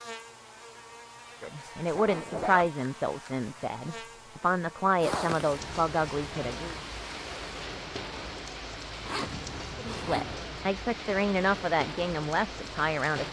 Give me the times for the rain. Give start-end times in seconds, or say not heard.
5.0-13.2.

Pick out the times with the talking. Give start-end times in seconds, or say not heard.
1.4-6.8, 9.8-13.2.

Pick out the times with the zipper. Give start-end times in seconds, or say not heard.
1.9-2.7, 5.0-5.5, 9.1-10.3.